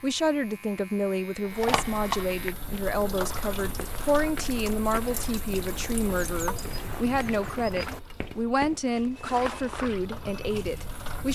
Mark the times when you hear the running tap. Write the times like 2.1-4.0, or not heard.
1.4-11.3.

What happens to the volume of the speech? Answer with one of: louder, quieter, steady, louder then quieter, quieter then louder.
steady.